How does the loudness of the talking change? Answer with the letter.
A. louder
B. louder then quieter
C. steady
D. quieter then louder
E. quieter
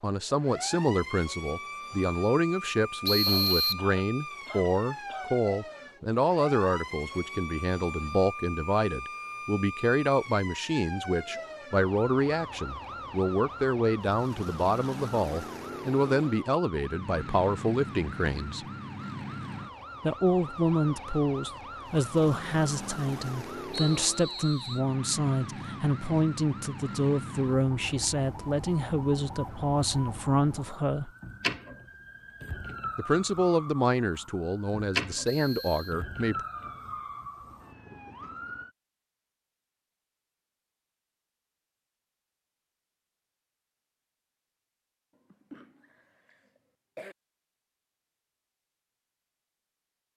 C.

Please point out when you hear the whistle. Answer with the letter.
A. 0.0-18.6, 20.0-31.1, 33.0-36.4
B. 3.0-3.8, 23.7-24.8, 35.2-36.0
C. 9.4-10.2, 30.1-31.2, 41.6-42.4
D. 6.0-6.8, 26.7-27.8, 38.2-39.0
B.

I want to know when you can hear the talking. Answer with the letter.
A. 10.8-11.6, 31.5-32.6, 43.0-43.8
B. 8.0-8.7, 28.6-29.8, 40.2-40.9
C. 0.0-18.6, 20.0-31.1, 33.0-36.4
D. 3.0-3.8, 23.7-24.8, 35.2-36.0
C.